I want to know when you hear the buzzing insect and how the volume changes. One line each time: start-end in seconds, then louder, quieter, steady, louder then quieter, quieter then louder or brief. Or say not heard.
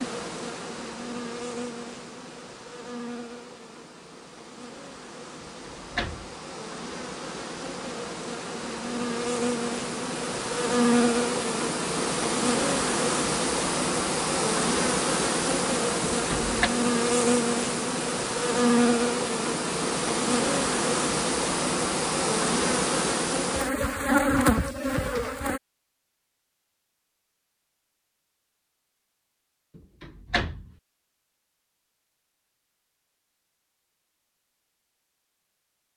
0.0-25.6 louder.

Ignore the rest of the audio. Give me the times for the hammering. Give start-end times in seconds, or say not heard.
not heard.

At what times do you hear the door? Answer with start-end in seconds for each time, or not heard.
5.3-6.3, 16.1-16.7, 29.8-30.7.